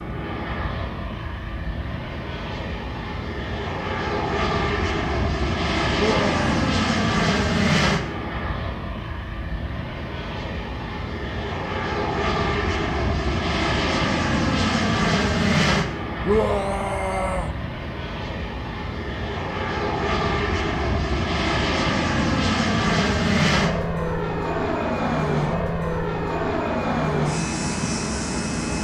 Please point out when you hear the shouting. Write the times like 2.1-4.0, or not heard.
6.0-6.5, 16.2-17.6.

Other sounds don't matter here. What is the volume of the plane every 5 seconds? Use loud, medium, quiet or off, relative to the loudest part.
medium, loud, loud, loud, loud, loud.